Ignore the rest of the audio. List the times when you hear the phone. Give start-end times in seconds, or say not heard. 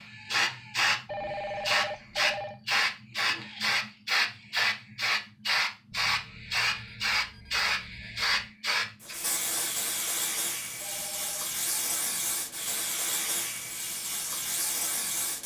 1.1-2.6, 5.9-8.5, 10.8-11.5.